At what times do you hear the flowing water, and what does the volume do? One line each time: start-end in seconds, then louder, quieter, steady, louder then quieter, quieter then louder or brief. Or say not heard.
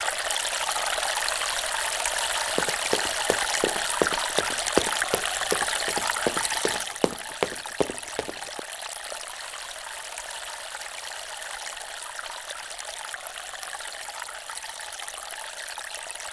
0.0-16.2 quieter.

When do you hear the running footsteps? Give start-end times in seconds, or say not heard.
2.5-8.6.